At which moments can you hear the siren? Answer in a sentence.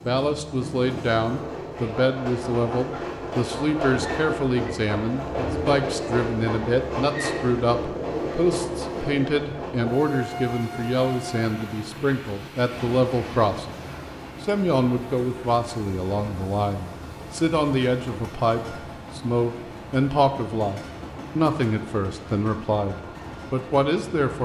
The siren can't be heard in this clip.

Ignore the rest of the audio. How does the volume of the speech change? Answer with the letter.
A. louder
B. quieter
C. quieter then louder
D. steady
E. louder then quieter
D.